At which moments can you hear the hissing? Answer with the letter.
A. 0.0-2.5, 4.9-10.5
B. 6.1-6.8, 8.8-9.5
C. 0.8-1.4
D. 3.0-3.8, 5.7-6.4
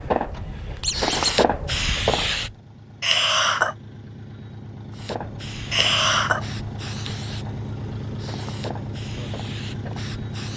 A.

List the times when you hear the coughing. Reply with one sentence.
The coughing can be heard from 3.0 to 3.8 s and from 5.7 to 6.4 s.